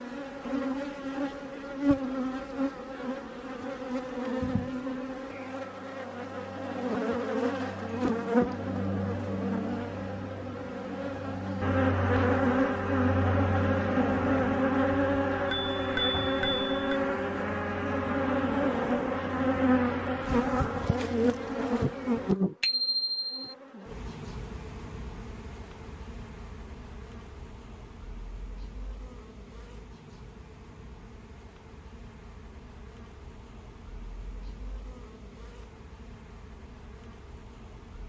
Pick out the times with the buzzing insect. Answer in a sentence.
You can hear the buzzing insect from 0.0 to 38.0 s.